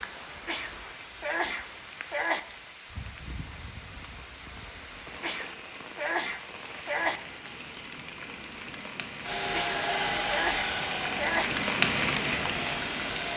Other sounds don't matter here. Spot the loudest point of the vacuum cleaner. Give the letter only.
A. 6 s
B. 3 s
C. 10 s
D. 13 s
C.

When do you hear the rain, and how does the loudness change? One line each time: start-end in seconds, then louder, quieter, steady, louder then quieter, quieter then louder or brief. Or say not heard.
0.0-13.3 louder.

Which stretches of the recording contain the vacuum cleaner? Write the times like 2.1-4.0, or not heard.
9.2-13.3.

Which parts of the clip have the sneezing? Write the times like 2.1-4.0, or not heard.
0.5-2.4, 5.2-7.2, 9.5-11.5.